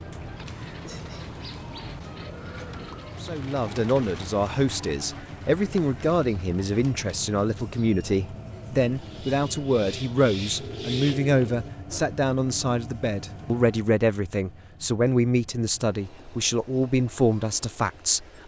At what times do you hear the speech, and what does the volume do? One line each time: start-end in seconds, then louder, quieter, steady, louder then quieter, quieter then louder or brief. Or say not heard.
3.2-18.4 steady.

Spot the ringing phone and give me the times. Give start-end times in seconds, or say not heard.
not heard.